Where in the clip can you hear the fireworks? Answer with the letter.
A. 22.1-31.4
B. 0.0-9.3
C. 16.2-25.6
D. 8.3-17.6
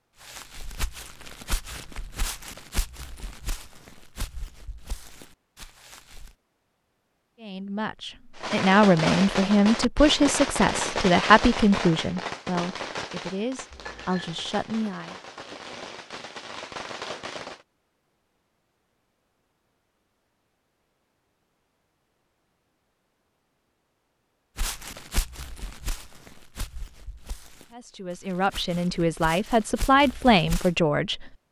D.